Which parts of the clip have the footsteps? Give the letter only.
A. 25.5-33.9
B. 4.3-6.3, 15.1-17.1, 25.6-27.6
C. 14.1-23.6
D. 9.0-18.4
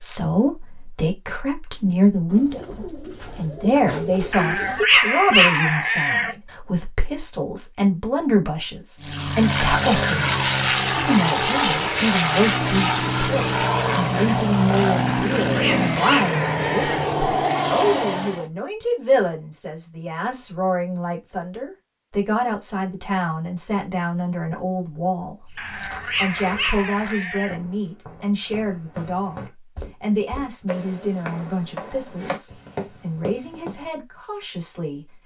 A.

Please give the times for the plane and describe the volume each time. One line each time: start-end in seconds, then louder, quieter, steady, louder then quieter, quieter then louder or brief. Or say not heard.
9.0-18.4 steady.